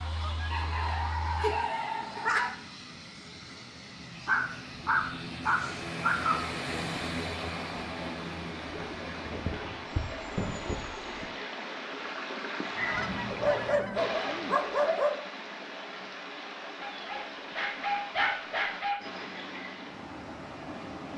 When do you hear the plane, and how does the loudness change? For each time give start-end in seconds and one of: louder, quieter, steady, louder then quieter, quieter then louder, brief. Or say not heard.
0.0-11.3 louder then quieter.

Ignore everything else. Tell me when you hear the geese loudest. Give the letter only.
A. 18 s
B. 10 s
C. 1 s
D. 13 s
D.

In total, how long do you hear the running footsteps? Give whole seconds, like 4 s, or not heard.
not heard.